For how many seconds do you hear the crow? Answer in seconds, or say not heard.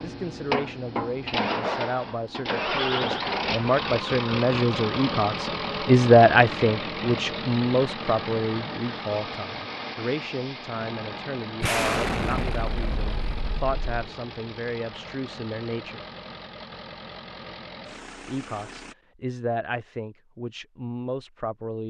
not heard.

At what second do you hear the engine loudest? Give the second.
3 s.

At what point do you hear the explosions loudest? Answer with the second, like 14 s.
12 s.